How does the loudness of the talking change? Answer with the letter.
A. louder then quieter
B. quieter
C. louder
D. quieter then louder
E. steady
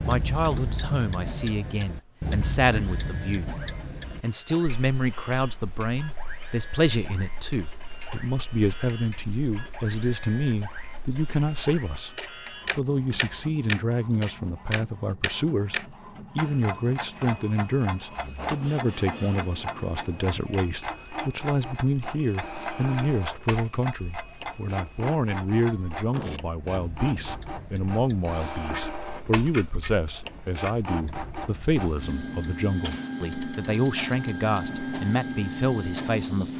E.